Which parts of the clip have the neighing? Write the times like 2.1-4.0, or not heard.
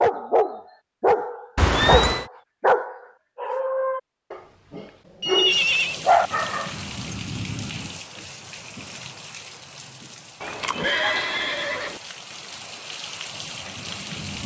1.6-2.2, 5.2-6.0, 10.4-12.0.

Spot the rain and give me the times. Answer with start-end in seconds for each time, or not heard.
5.5-14.4.